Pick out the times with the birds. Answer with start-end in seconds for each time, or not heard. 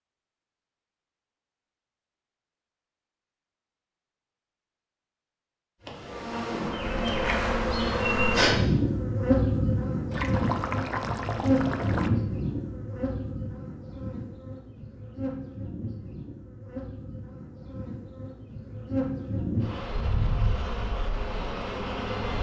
not heard.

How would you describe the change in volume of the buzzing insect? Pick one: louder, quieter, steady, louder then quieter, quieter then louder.
quieter then louder.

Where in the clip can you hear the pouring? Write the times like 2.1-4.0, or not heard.
10.1-12.1.